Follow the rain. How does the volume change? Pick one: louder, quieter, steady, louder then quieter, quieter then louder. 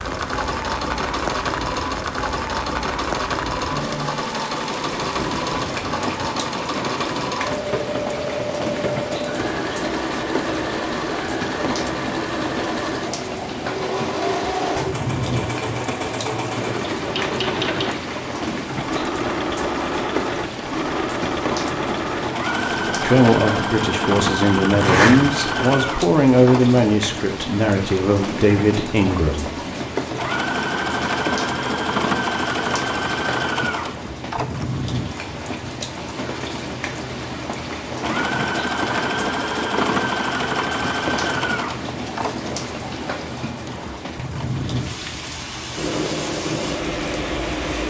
steady.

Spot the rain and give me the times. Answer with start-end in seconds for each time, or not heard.
0.0-47.8.